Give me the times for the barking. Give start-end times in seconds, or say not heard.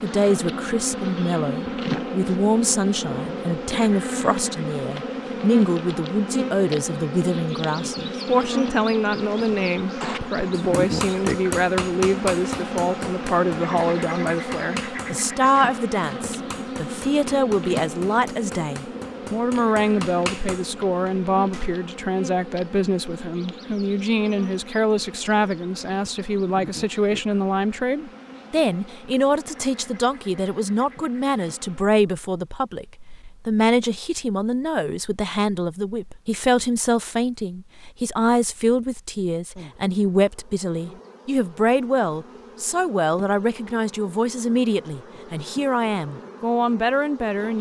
not heard.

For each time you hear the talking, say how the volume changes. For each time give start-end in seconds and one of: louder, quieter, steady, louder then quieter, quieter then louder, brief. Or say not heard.
0.0-32.9 steady
33.5-47.5 steady.